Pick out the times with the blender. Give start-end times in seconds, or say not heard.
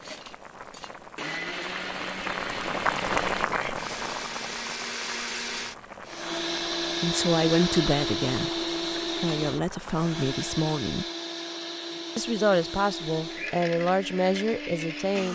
0.0-15.3.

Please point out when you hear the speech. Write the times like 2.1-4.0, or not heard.
7.0-8.6, 9.2-11.1, 12.2-15.3.